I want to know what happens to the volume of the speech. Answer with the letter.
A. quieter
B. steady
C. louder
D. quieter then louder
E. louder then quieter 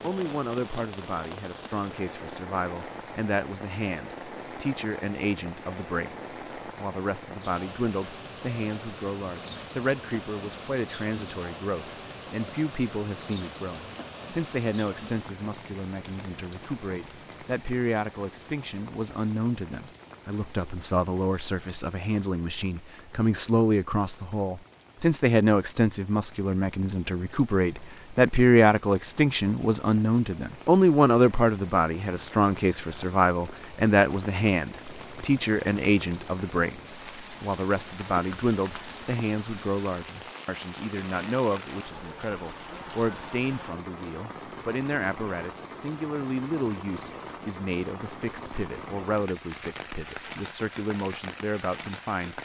E.